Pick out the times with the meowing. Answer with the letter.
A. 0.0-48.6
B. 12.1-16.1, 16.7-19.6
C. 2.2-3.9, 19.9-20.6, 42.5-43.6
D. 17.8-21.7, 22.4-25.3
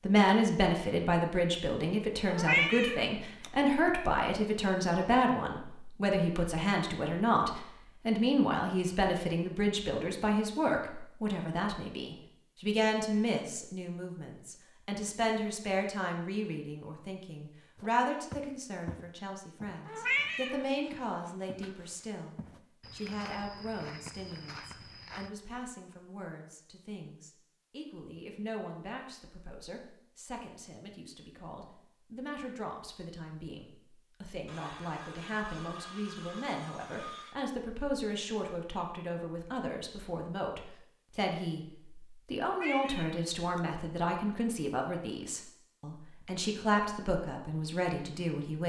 C.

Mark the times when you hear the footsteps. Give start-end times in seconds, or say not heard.
17.8-21.7, 22.4-25.3.